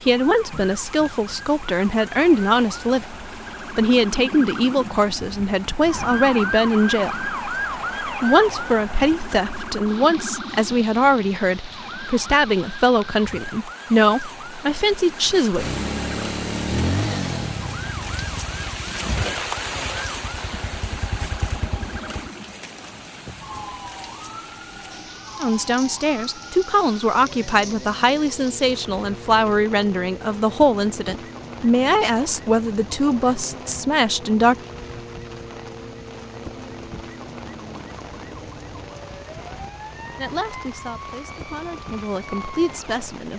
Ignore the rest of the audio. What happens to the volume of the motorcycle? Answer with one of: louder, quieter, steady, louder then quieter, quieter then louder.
quieter then louder.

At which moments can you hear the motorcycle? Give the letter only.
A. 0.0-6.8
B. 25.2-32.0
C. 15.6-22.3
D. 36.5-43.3
C.